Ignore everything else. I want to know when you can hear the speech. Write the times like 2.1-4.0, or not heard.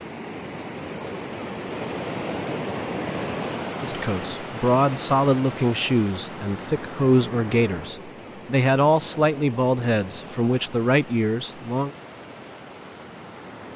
3.8-11.9.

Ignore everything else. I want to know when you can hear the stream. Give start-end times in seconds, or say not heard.
0.0-13.7.